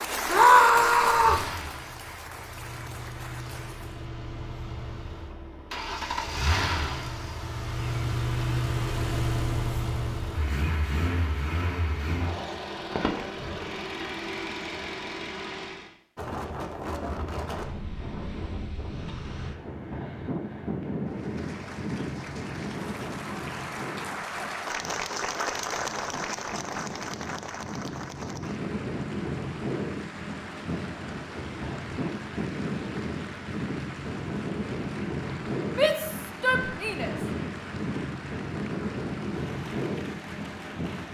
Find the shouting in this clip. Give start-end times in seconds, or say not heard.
0.2-1.4, 35.8-37.1.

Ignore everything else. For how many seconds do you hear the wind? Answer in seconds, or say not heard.
25 s.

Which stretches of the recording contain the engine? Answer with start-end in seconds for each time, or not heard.
0.0-15.9.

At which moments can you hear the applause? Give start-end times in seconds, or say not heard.
0.0-4.0, 21.1-41.0.